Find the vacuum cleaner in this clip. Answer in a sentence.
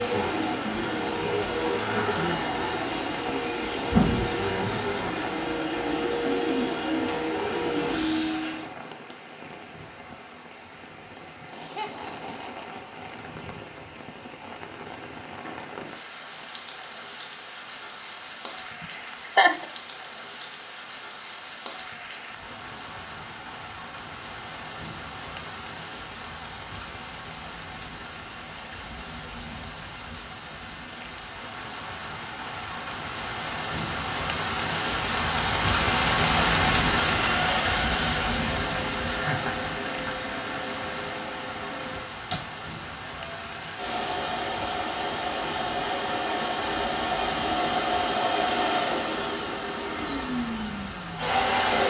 You can hear the vacuum cleaner from 0.0 to 8.7 s and from 37.0 to 51.8 s.